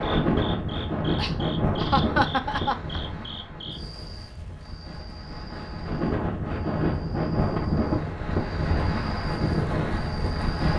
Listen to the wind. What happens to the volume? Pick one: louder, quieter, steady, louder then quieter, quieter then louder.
quieter then louder.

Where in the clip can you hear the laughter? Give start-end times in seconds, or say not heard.
1.1-3.0.